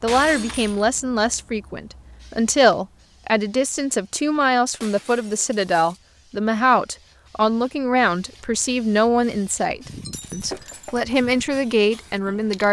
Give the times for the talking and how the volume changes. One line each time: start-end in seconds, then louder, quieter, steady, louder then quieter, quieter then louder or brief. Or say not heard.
0.0-12.6 steady.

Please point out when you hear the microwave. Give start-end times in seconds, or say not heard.
not heard.